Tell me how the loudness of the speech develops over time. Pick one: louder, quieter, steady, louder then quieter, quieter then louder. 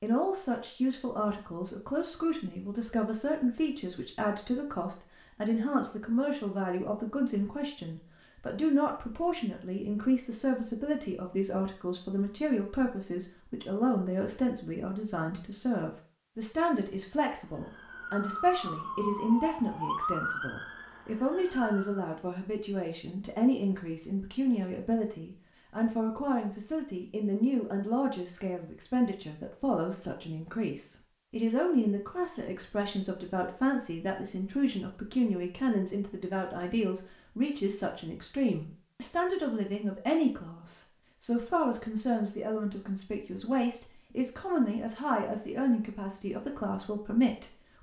steady.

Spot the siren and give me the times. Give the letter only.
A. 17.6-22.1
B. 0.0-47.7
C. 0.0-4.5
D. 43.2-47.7
A.